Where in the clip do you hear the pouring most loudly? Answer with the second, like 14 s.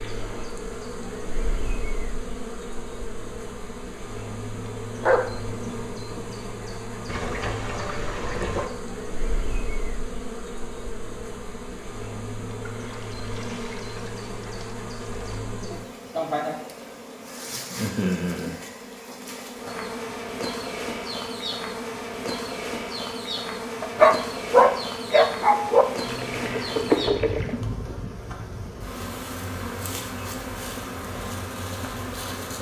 27 s.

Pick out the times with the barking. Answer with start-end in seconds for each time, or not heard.
5.0-6.3, 23.8-25.9.